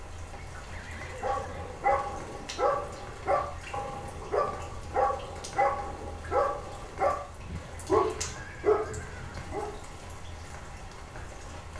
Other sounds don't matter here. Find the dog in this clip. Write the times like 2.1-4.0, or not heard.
1.2-9.7.